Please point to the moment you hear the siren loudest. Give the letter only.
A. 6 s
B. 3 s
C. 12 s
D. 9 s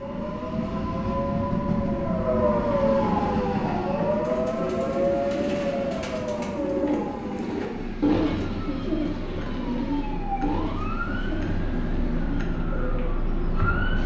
B.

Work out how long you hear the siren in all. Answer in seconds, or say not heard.
14 s.